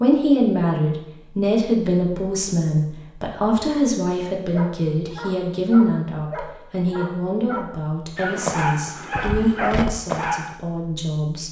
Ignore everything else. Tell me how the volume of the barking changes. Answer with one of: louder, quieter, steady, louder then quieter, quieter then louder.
louder.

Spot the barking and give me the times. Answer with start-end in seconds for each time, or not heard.
4.5-10.6.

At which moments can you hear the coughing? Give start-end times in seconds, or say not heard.
not heard.